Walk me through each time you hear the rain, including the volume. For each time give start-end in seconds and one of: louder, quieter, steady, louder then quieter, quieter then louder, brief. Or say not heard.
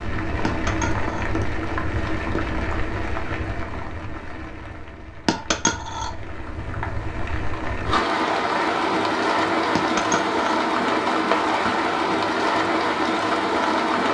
0.0-14.0 quieter then louder.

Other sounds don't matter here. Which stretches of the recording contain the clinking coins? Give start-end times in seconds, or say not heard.
0.5-1.3, 5.2-6.1, 9.8-10.3.